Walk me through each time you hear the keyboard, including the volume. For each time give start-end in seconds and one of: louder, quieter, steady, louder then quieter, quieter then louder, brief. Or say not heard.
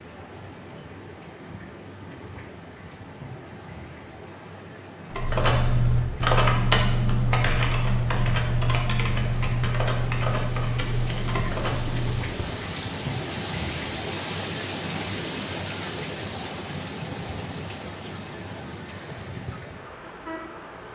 5.1-12.8 quieter.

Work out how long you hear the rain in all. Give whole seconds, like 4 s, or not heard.
21 s.